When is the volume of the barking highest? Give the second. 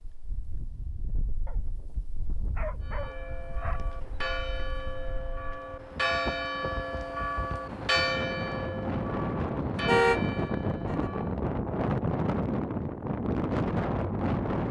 3 s.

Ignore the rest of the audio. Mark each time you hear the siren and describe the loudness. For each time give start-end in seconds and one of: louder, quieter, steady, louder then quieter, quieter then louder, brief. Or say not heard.
not heard.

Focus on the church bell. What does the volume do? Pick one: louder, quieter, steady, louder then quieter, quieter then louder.
louder then quieter.